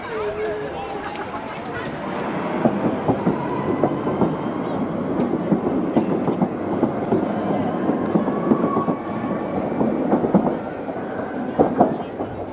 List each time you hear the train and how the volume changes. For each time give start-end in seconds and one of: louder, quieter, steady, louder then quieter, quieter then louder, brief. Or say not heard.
0.0-12.4 louder.